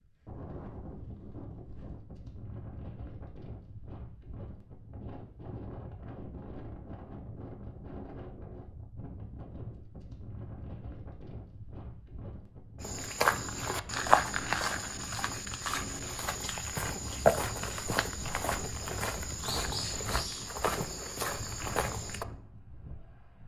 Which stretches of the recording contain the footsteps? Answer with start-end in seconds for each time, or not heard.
12.8-22.2.